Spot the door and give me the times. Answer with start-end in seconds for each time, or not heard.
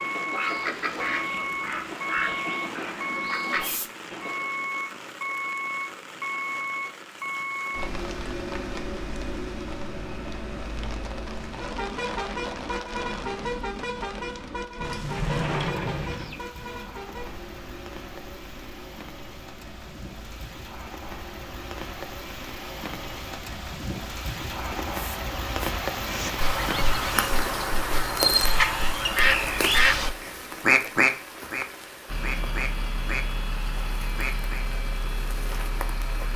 14.8-16.4.